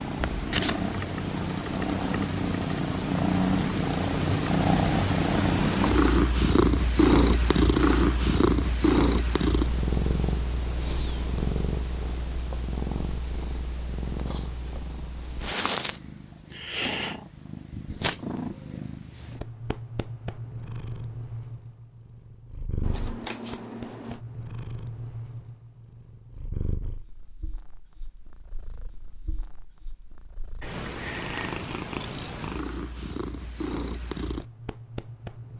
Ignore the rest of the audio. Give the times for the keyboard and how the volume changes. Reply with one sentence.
The keyboard can't be heard in this clip.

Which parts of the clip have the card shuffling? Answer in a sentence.
You can hear the card shuffling from 0.2 to 0.9 s and from 22.8 to 24.2 s.